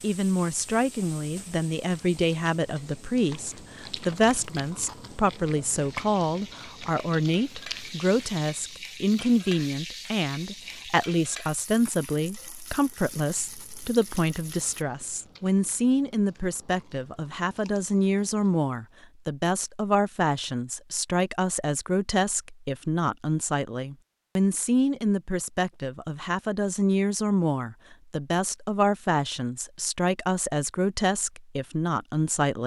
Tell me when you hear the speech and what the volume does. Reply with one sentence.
You can hear the speech from 0.0 to 32.6 s, at a steady volume.